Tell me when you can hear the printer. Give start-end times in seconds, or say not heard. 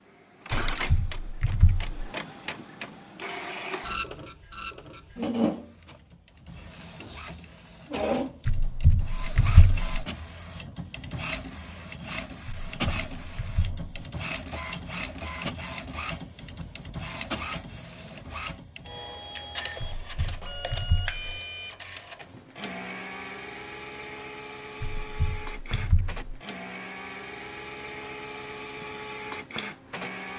0.0-30.3.